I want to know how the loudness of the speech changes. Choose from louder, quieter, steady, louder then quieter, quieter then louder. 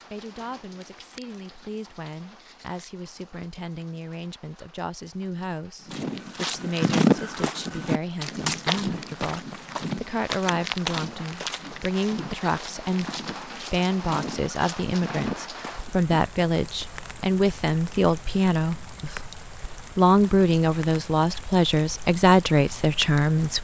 louder.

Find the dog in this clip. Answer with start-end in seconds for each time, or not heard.
not heard.